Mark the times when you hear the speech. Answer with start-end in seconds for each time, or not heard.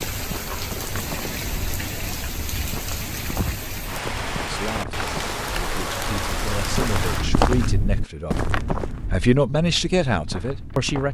4.4-11.0.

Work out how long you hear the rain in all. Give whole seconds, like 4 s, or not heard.
7 s.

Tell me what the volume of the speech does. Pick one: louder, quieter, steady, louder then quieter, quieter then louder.
louder.